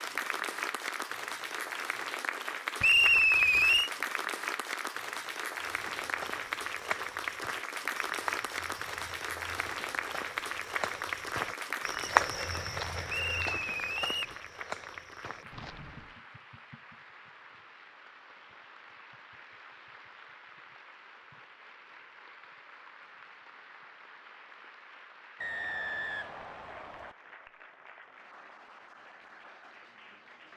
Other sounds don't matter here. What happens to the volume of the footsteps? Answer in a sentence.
The loudness of the footsteps goes up, then down.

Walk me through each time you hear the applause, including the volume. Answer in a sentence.
You can hear the applause from 0.0 to 30.5 s, getting quieter.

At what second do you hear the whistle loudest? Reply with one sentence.
The volume of the whistle peaks at 3 seconds.